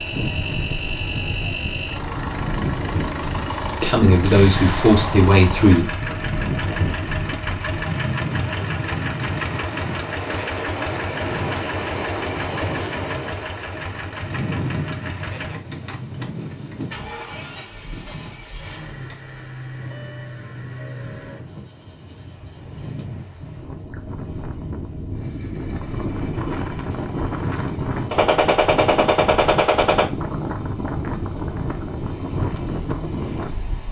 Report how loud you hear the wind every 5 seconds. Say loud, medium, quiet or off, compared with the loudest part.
loud, loud, loud, medium, medium, loud, loud.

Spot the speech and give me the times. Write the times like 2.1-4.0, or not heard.
3.8-5.8.